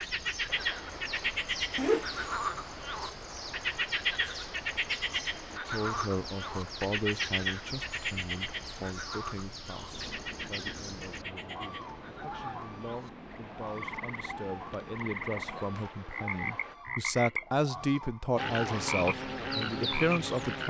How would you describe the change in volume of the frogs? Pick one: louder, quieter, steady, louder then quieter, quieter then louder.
quieter then louder.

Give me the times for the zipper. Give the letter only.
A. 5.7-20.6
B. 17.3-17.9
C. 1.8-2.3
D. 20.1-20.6
C.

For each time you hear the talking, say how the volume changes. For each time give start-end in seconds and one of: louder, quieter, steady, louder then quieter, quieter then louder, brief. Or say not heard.
5.7-20.6 quieter then louder.